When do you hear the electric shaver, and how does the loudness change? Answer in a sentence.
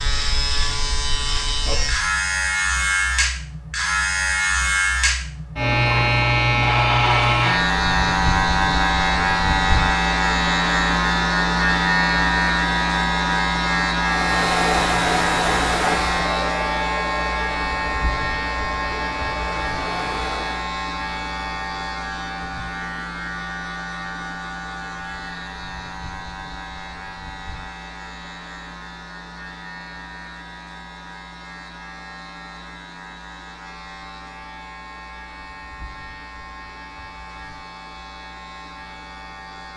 The electric shaver can be heard from 0.0 to 39.7 s, getting quieter.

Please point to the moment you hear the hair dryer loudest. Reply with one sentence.
The loudest moment of the hair dryer is at 15 seconds.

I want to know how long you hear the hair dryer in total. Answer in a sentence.
The hair dryer can be heard for 7 seconds in total.